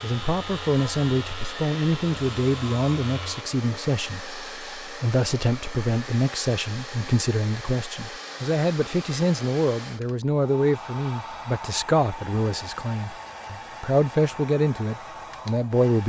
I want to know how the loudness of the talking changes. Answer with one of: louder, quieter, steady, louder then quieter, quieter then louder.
steady.